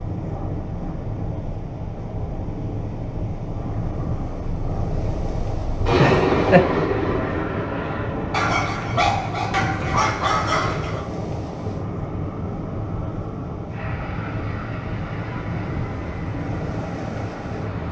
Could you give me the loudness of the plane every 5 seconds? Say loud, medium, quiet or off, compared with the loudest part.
quiet, loud, medium, medium.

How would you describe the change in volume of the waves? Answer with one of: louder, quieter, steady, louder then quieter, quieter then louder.
steady.